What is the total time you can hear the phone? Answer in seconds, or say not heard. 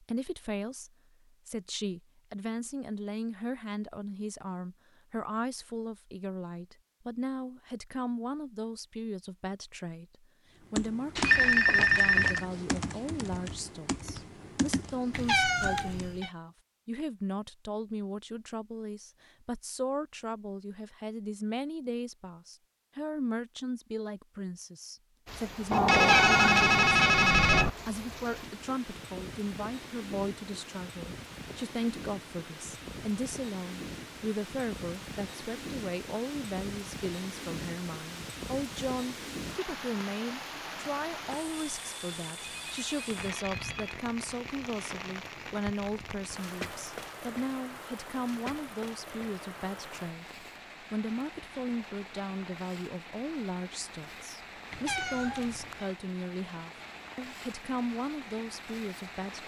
5 s.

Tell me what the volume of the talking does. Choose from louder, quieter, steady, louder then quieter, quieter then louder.
steady.